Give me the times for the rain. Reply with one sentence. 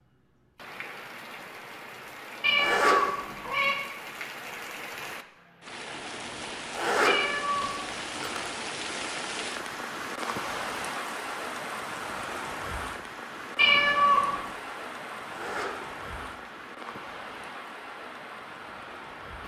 You can hear the rain from 0.0 to 19.4 s.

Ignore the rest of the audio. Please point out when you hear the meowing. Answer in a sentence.
You can hear the meowing from 2.4 to 3.8 s, from 7.0 to 7.7 s and from 13.6 to 14.4 s.